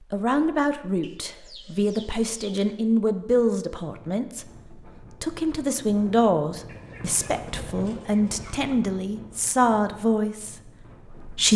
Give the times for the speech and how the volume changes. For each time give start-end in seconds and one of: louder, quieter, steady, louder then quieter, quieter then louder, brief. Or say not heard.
0.0-11.5 steady.